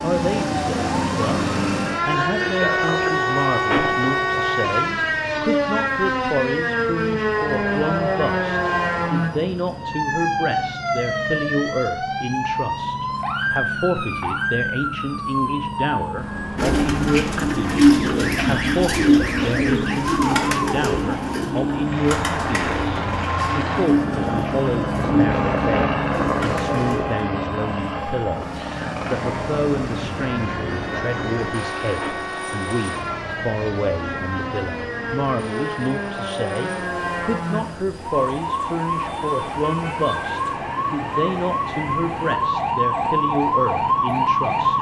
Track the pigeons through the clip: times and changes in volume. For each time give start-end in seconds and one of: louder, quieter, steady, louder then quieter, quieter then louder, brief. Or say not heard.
16.6-27.1 quieter.